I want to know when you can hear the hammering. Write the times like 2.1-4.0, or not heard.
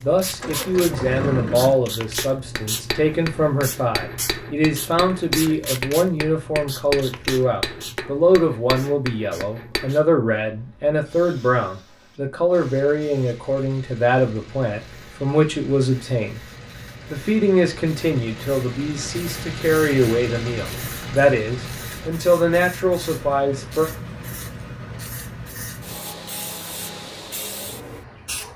2.0-9.9.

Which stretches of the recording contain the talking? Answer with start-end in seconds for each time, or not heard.
0.0-16.4, 17.1-23.9.